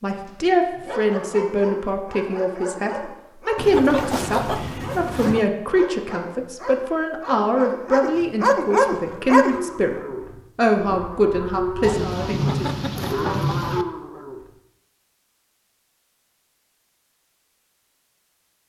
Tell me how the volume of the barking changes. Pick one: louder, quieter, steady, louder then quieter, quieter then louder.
louder.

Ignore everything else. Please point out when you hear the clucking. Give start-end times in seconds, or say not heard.
3.5-5.5, 11.8-13.8.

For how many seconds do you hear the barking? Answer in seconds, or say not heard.
9 s.